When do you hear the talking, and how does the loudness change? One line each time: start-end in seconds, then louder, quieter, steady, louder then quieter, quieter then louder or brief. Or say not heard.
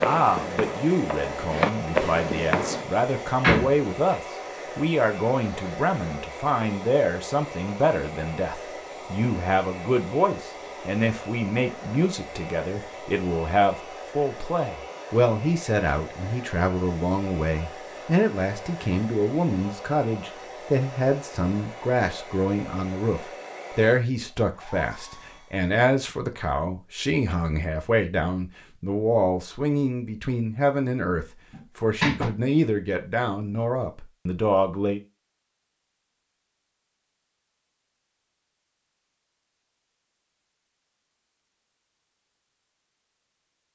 0.0-35.0 steady.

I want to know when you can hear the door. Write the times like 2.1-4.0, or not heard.
3.4-4.2, 31.5-32.3.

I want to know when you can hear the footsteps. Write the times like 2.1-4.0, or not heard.
0.0-2.9.